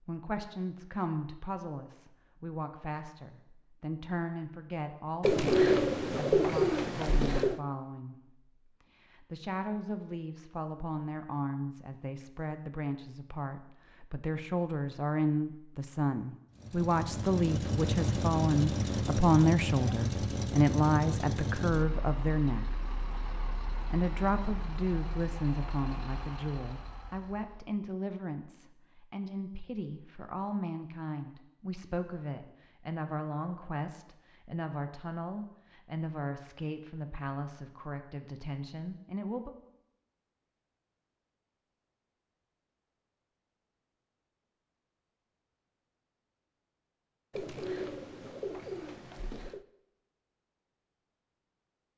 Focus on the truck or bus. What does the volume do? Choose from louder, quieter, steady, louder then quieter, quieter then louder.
quieter.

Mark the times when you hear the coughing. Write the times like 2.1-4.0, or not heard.
not heard.